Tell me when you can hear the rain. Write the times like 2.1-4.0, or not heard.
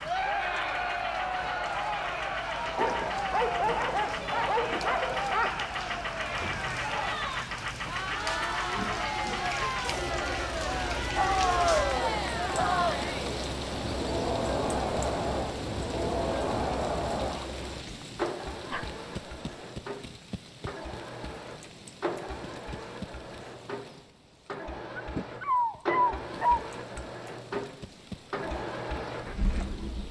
0.0-30.0.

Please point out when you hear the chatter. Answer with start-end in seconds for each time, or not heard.
0.0-17.4.